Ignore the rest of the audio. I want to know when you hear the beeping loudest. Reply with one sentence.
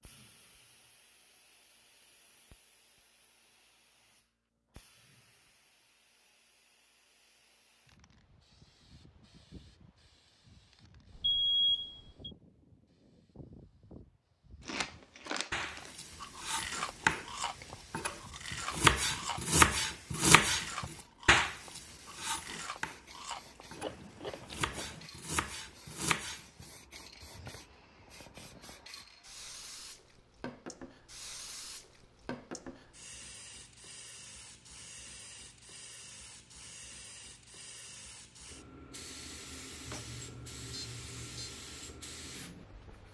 The volume of the beeping peaks at 12 seconds.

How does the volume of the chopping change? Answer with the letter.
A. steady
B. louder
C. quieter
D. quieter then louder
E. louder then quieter
E.